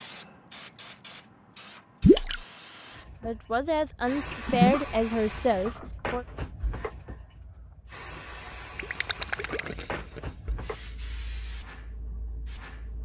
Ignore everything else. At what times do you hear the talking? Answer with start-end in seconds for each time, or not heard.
3.2-6.2.